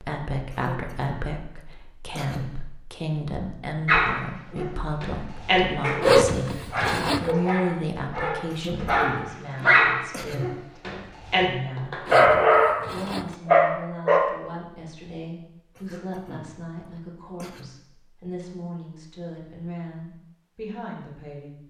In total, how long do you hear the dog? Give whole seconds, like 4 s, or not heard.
10 s.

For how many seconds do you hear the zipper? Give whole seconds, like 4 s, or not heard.
3 s.